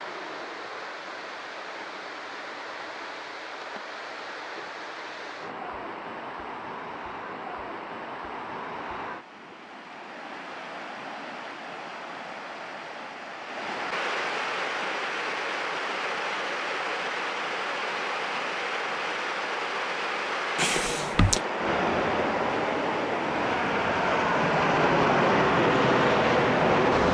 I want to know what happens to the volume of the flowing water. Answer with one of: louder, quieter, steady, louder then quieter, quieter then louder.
louder.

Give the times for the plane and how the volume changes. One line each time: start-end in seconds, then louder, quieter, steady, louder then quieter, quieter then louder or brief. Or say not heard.
21.6-27.0 louder.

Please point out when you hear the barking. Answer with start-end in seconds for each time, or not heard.
not heard.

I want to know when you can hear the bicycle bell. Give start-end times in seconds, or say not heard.
20.6-21.4.